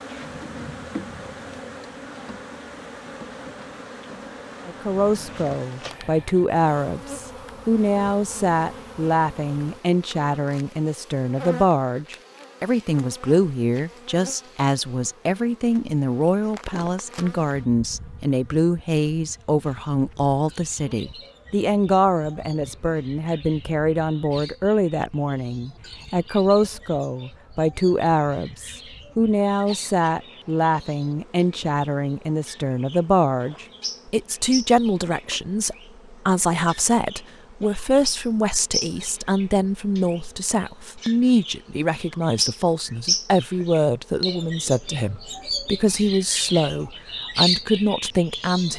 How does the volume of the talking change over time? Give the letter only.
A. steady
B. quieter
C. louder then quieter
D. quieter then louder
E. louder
A.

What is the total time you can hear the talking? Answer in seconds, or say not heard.
44 s.